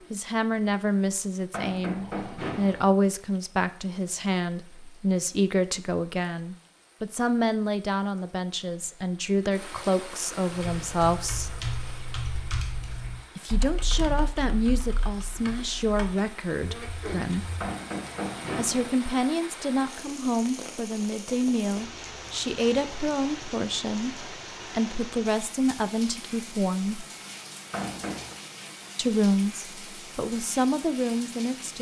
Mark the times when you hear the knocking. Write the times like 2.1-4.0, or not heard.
1.5-2.9, 17.6-18.9, 27.7-28.4.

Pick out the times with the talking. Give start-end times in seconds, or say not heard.
0.1-11.5, 13.3-17.5, 18.6-27.1, 28.9-31.7.